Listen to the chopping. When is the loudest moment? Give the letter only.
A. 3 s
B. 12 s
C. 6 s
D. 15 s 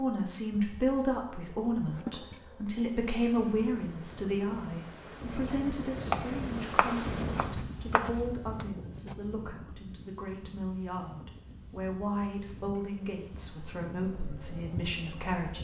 C.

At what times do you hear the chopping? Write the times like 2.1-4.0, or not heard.
5.2-9.2.